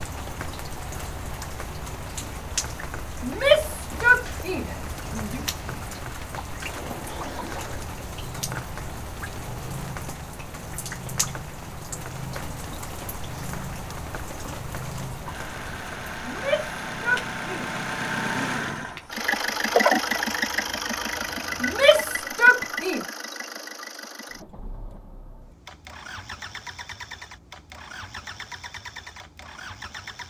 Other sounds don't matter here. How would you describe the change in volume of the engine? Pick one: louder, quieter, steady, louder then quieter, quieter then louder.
louder then quieter.